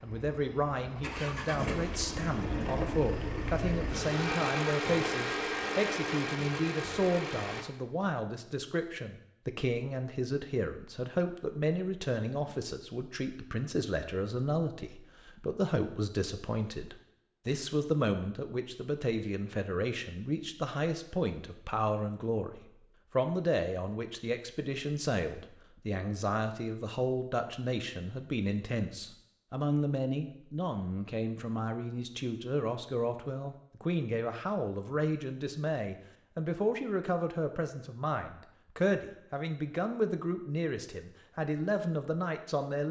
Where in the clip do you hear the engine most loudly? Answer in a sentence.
The loudest moment of the engine is at 5 seconds.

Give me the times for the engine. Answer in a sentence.
You can hear the engine from 0.0 to 7.7 s.